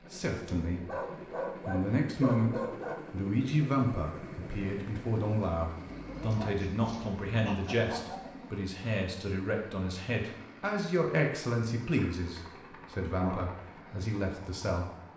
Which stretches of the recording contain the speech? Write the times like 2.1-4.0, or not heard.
0.1-0.8, 1.6-14.9.